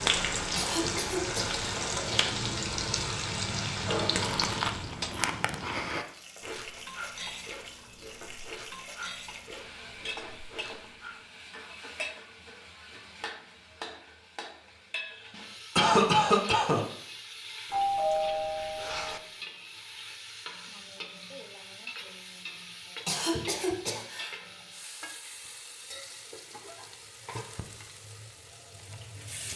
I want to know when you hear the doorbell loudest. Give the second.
18 s.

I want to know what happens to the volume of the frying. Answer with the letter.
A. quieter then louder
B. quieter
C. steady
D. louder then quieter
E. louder
B.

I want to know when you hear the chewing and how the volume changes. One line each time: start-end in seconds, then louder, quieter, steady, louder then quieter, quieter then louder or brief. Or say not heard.
4.0-11.2 quieter.